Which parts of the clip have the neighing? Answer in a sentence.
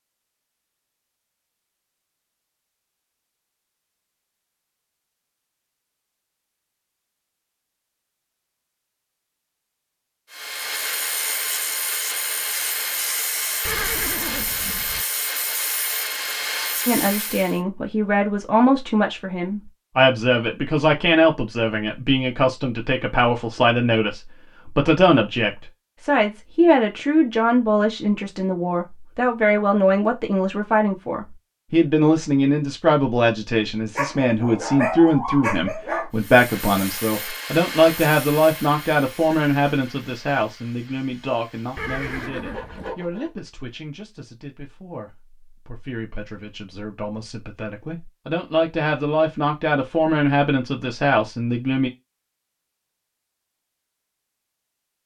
You can hear the neighing from 13.7 to 15.1 s and from 41.8 to 43.0 s.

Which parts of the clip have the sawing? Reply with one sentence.
The sawing can be heard from 10.3 to 17.6 s and from 36.1 to 43.4 s.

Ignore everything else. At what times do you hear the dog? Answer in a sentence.
You can hear the dog from 34.0 to 36.1 s.